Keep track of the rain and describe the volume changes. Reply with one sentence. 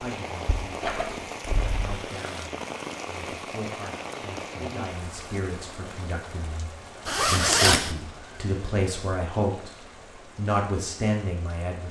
The volume of the rain goes down.